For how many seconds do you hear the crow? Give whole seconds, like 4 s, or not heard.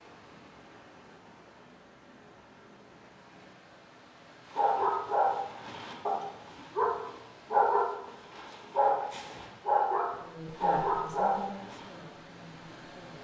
not heard.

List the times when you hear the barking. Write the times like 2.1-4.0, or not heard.
4.5-11.9.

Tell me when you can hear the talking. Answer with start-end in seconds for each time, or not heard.
10.2-13.2.